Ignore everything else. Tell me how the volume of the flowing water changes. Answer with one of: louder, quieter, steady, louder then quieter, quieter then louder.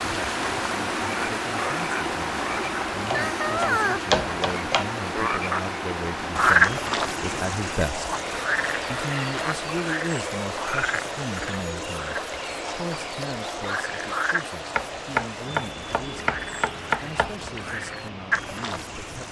quieter.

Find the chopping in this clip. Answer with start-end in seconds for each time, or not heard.
2.6-4.8, 14.8-17.5.